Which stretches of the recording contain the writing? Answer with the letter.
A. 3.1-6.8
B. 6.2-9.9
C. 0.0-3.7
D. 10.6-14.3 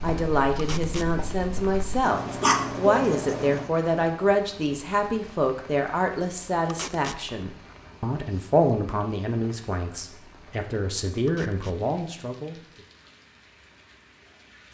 C.